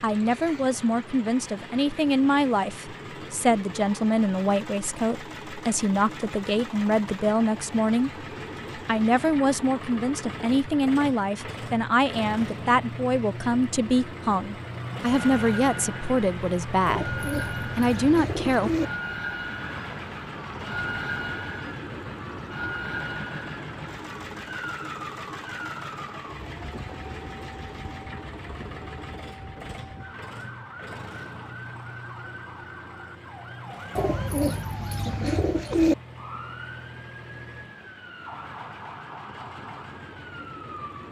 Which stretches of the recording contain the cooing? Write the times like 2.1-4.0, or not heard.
16.9-18.9, 34.0-36.0.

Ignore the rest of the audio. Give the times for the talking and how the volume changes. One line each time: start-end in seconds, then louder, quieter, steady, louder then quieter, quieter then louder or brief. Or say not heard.
0.0-18.7 steady.